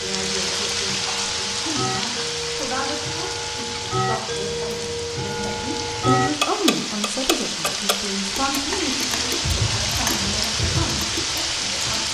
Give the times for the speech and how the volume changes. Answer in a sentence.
You can hear the speech from 0.0 to 12.1 s, getting louder then quieter.